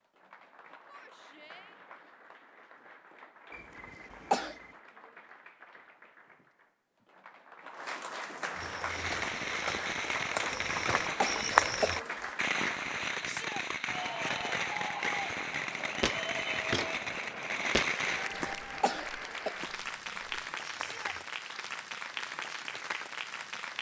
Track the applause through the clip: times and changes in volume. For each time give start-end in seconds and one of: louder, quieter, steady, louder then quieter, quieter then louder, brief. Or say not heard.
0.0-23.7 louder.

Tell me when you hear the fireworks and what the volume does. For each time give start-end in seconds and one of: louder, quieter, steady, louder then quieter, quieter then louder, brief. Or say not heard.
8.8-18.4 steady.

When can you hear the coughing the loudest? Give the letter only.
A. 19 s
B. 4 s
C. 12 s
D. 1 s
B.